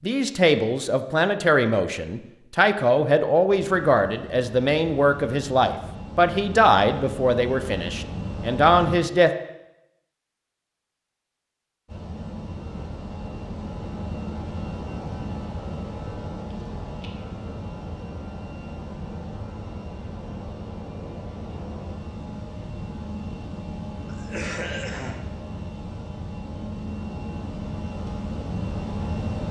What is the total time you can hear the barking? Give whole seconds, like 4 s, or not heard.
not heard.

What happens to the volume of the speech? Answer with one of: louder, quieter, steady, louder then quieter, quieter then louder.
steady.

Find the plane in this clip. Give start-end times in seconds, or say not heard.
3.6-9.0, 11.8-29.4.